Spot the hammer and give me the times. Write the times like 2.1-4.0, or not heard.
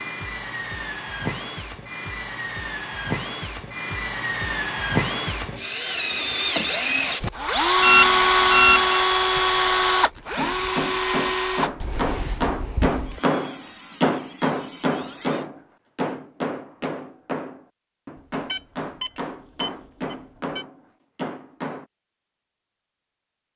10.2-21.9.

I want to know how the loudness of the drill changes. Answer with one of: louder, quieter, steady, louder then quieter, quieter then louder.
louder then quieter.